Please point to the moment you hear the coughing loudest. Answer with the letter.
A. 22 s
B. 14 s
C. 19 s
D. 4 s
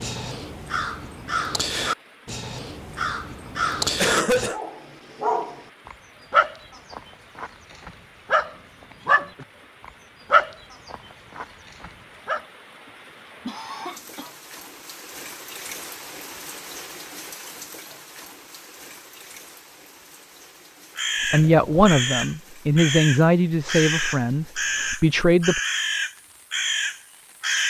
D.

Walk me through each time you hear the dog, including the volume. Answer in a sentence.
You can hear the dog from 4.4 to 12.4 s, getting louder then quieter.